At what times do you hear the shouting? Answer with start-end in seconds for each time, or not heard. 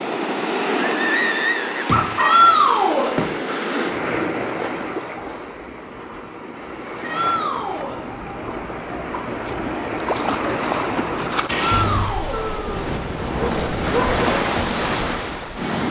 2.1-3.1, 7.0-8.0, 11.5-12.4.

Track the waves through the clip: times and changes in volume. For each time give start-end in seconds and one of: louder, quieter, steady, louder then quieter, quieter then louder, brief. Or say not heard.
0.0-15.8 quieter then louder.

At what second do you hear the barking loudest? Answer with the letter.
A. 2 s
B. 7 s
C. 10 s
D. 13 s
A.